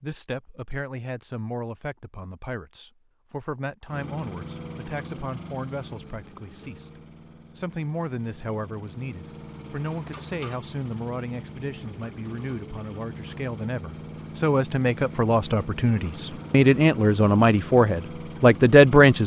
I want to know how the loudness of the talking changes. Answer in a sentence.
The loudness of the talking goes up.